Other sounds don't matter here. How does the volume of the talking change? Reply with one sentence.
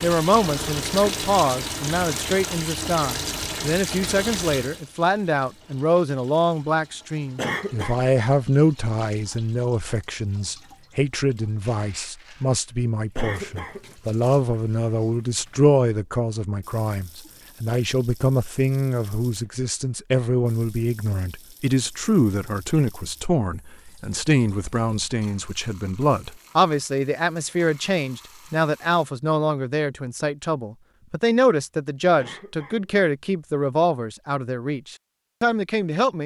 The volume of the talking stays about the same.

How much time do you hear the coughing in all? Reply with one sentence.
The coughing can be heard for 2 seconds in total.